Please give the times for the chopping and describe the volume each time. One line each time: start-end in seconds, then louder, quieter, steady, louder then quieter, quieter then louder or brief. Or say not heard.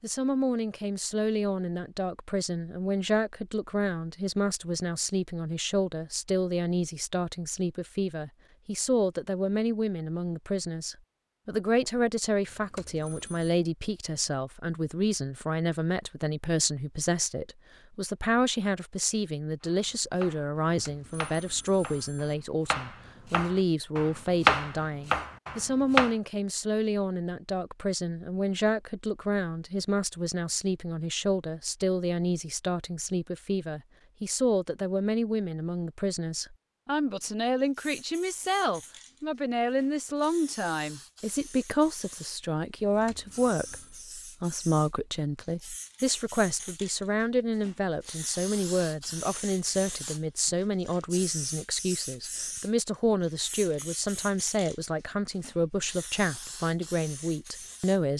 19.6-26.1 louder then quieter.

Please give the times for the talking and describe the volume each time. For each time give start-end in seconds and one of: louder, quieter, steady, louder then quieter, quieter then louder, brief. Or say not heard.
0.0-58.1 steady.